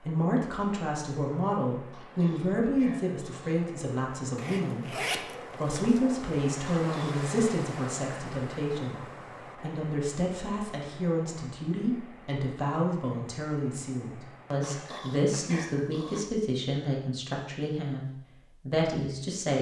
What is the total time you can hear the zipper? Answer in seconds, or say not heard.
2 s.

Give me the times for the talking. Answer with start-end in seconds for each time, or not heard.
0.0-19.5.